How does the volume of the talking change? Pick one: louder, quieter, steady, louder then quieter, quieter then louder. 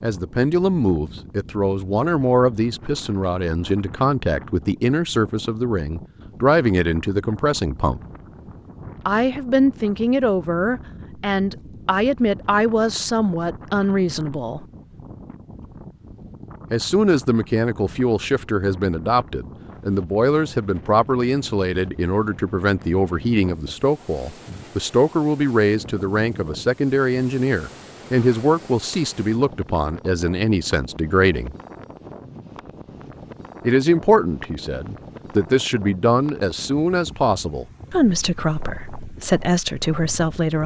steady.